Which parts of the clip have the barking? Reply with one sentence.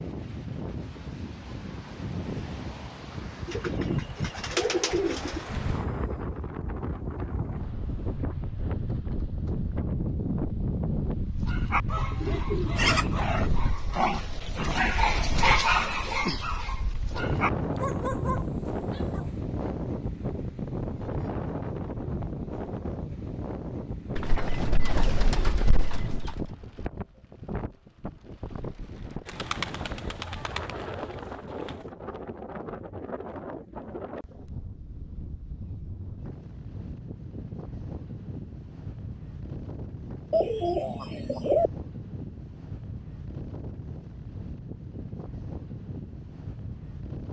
The barking can be heard from 11.4 to 19.8 s.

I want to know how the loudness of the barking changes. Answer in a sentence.
The loudness of the barking goes up, then down.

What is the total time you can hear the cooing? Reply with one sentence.
The cooing can be heard for 9 seconds in total.